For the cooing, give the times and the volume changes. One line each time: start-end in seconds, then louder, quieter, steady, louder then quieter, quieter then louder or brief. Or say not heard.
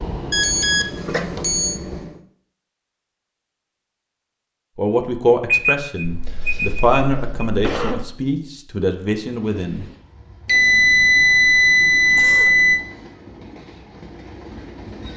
not heard.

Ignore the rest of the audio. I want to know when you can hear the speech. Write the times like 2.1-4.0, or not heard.
4.8-9.8.